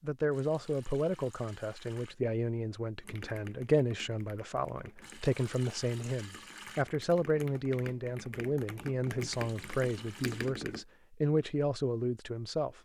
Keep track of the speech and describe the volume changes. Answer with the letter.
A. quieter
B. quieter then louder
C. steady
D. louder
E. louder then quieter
C.